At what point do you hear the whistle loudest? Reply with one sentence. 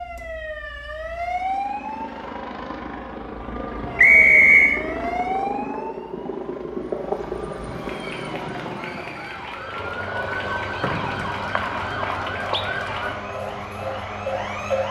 The volume of the whistle peaks at 4 seconds.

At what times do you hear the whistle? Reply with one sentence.
You can hear the whistle from 4.0 to 4.8 s and from 10.8 to 12.7 s.